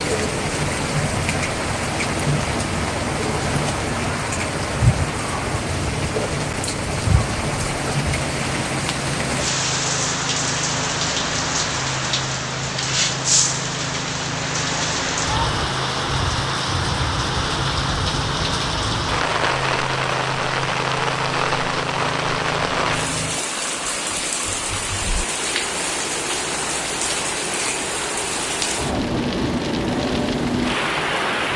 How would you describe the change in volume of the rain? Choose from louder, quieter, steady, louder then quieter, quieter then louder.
steady.